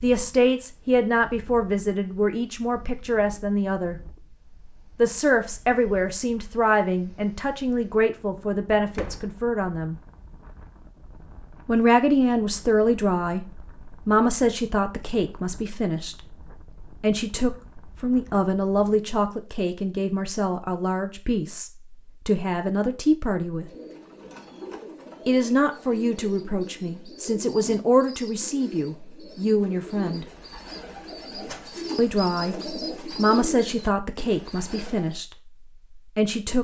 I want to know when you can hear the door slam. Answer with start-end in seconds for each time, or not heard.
8.9-9.3.